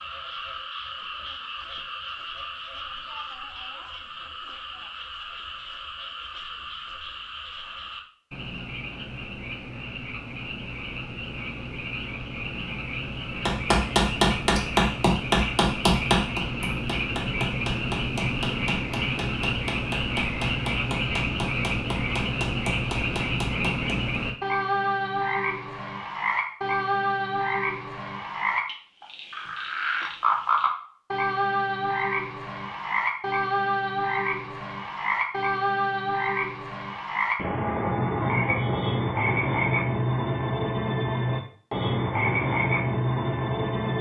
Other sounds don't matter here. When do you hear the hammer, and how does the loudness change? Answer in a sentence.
The hammer can be heard from 13.4 to 24.2 s, getting quieter.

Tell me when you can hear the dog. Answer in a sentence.
The dog can't be heard in this clip.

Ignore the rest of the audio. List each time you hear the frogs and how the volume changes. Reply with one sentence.
You can hear the frogs from 0.0 to 43.9 s, getting louder.